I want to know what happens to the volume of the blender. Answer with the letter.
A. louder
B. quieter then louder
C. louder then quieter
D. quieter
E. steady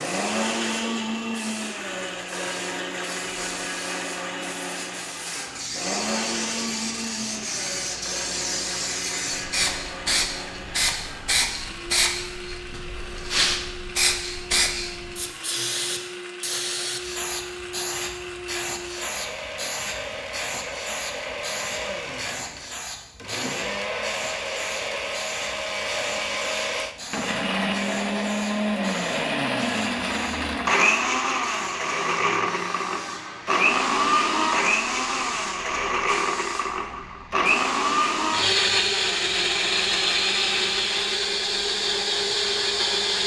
B.